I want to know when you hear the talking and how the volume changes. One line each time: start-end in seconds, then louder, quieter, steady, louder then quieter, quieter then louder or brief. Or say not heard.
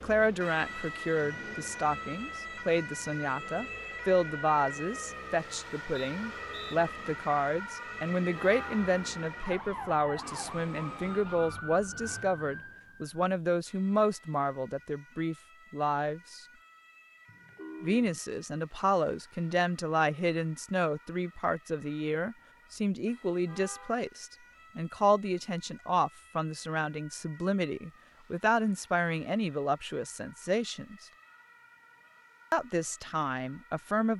0.0-16.4 steady
17.8-30.9 steady
32.5-34.1 brief.